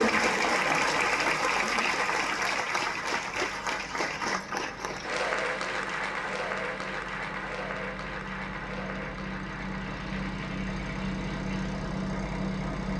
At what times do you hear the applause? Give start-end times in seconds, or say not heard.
0.0-12.9.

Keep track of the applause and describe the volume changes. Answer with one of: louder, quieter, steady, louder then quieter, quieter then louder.
quieter.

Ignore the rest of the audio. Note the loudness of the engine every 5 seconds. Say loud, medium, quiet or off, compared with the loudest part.
quiet, medium, loud.